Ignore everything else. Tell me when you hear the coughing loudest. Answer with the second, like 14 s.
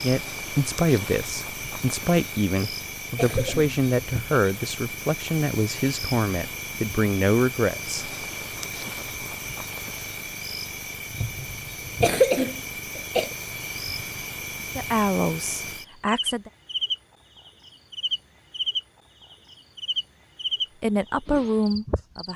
12 s.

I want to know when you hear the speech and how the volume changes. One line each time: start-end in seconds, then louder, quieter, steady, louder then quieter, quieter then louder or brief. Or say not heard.
0.0-8.1 steady
14.8-16.5 brief
20.8-22.3 brief.